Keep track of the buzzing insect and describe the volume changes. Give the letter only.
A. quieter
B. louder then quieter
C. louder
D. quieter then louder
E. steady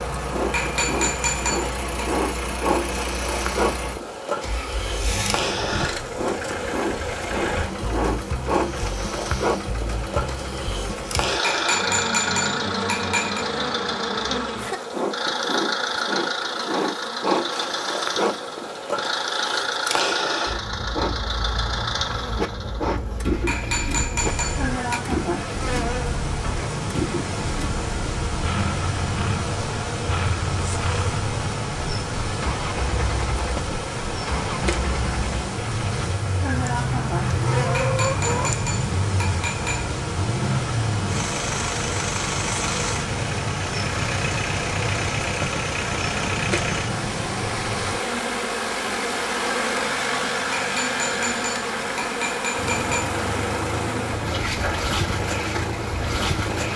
E.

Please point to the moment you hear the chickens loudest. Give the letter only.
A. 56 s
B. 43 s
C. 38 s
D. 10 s
C.